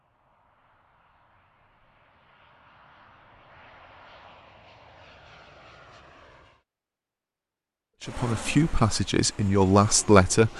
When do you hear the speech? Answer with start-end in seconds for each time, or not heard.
8.0-10.5.